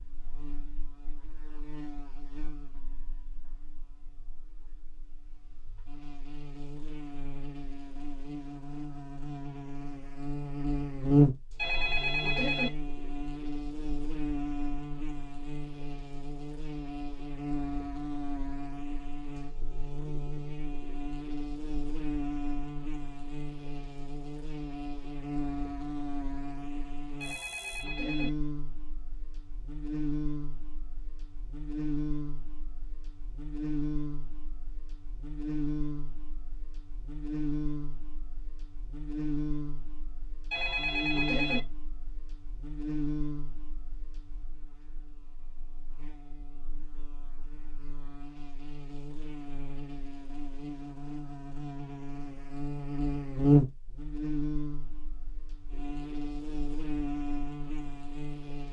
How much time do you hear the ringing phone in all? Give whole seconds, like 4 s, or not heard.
3 s.